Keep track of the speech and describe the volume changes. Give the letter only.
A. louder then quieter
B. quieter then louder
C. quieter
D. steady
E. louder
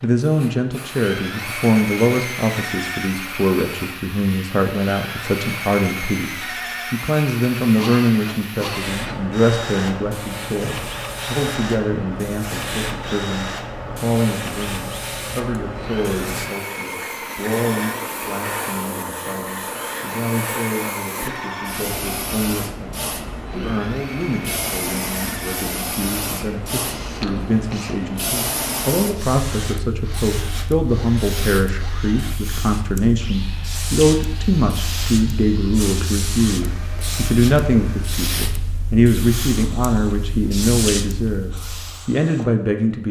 B.